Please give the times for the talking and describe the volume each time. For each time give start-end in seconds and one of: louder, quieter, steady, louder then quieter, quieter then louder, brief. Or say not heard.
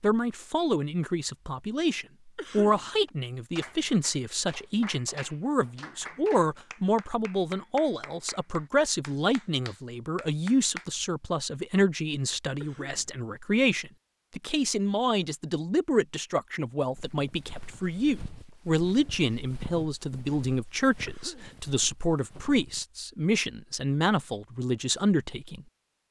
0.0-25.6 steady.